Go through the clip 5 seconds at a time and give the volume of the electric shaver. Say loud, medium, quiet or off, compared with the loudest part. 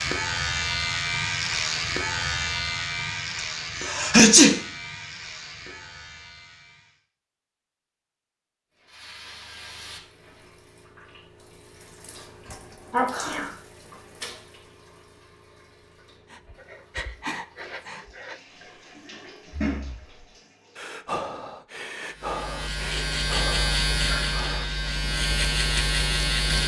loud, quiet, off, off, loud, loud.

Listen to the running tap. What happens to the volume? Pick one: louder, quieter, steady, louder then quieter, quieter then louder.
quieter then louder.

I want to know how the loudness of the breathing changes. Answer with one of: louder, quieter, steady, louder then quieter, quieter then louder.
quieter then louder.